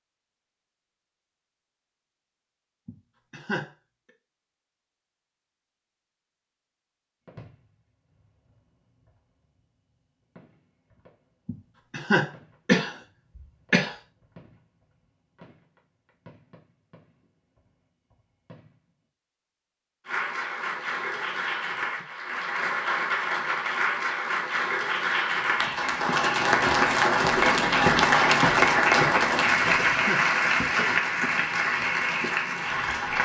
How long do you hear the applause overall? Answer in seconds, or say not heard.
13 s.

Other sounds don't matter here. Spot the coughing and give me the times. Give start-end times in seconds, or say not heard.
2.9-3.7, 11.4-13.9, 29.4-30.2.